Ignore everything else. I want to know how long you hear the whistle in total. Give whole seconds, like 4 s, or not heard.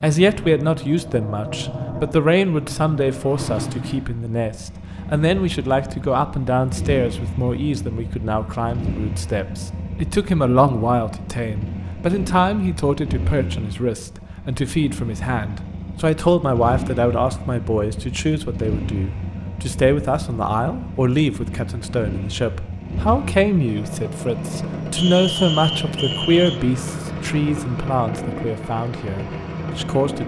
2 s.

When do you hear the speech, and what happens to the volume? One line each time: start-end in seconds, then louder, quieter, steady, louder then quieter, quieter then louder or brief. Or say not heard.
0.0-30.2 steady.